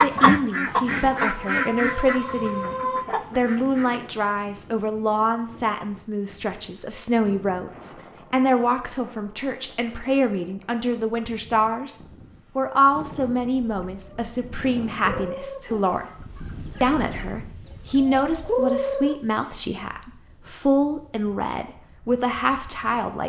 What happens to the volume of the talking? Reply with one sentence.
The volume of the talking stays about the same.